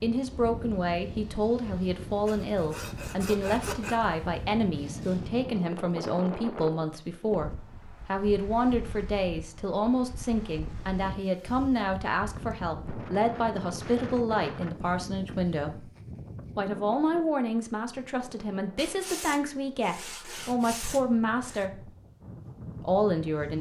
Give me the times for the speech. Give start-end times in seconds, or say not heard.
0.0-15.9, 16.6-21.9, 22.8-23.5.